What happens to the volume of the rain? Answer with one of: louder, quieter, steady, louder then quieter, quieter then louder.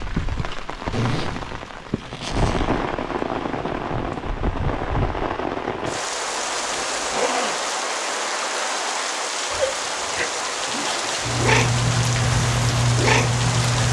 steady.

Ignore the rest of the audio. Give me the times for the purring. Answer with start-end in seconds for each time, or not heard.
11.2-13.8.